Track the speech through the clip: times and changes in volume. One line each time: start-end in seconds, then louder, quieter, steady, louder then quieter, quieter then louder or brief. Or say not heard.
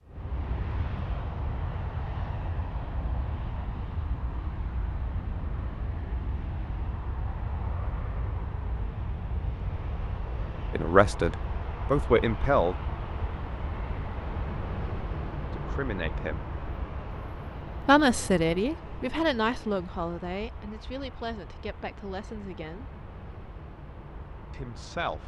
10.7-12.8 brief
15.5-16.4 brief
17.8-22.9 quieter
24.5-25.2 brief.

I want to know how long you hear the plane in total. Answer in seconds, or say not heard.
25 s.